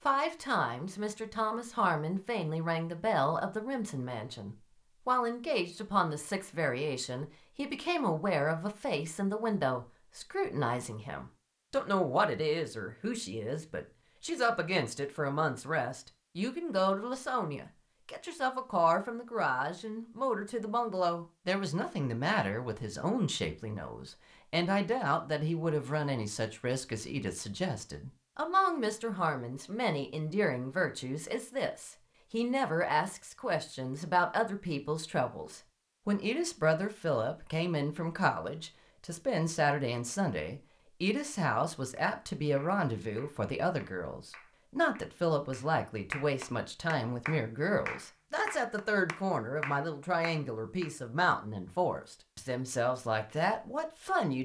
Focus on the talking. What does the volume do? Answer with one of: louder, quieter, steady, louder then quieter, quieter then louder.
steady.